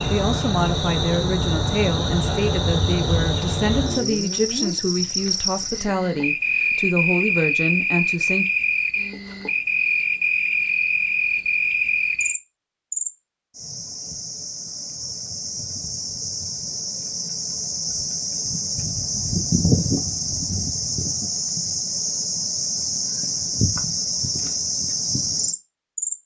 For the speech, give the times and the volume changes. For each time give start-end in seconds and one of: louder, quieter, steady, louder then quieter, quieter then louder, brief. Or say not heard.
0.1-8.4 steady.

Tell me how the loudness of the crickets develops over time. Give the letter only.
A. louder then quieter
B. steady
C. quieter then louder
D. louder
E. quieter
B.